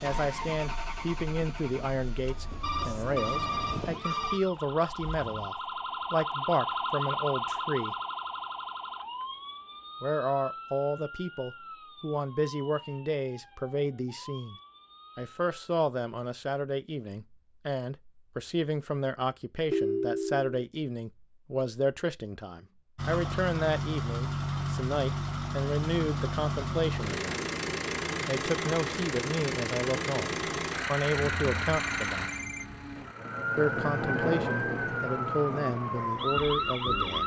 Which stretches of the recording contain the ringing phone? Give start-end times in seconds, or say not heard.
2.6-4.4, 19.7-20.6, 31.1-33.1.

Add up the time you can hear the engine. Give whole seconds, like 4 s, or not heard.
20 s.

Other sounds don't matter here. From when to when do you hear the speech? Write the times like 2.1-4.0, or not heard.
0.0-8.0, 10.0-14.6, 15.2-27.4, 28.2-32.3, 33.5-37.2.